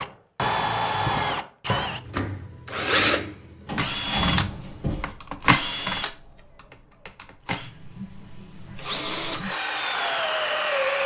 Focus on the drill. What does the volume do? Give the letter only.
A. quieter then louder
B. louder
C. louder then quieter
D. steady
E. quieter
A.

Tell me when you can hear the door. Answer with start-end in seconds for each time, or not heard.
3.6-5.2.